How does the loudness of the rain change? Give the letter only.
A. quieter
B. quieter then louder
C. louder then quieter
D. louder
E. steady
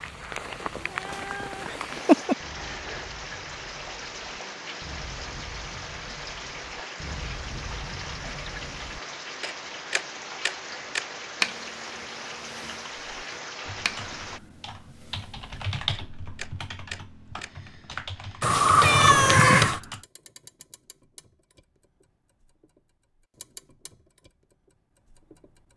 E.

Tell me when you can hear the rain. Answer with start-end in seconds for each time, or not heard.
0.0-14.4.